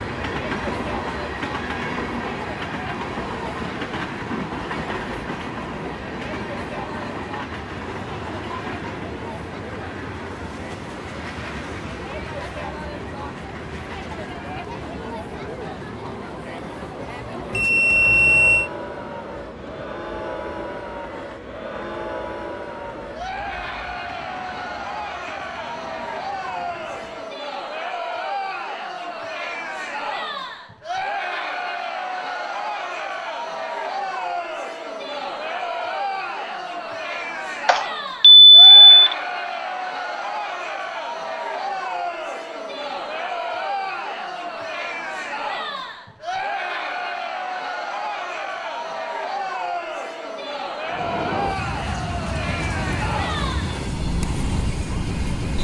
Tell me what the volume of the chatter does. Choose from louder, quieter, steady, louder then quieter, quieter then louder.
louder.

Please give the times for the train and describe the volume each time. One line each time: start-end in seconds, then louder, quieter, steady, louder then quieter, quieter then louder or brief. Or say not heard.
0.0-27.4 quieter
50.9-55.5 steady.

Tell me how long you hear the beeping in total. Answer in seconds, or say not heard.
3 s.